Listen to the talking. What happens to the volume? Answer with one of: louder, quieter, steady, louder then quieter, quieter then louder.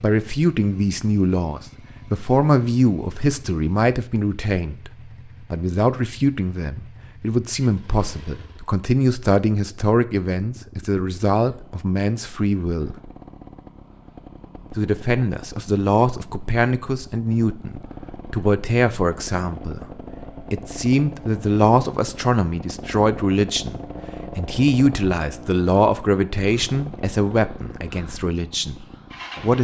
steady.